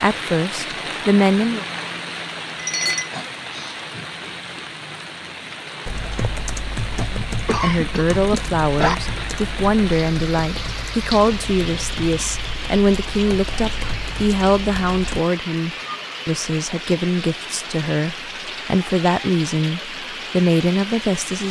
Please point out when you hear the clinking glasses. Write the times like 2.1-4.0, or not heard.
2.5-3.8.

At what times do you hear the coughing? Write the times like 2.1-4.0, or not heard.
7.5-8.9.